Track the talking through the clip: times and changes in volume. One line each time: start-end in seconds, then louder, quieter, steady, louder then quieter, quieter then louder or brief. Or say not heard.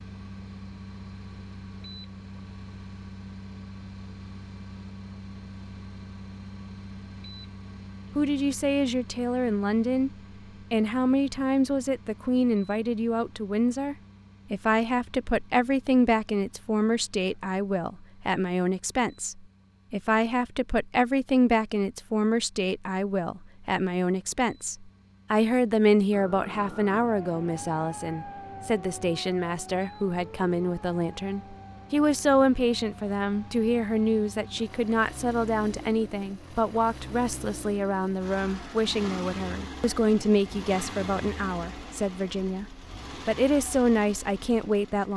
8.2-10.1 brief
10.7-42.6 steady
43.2-45.1 brief.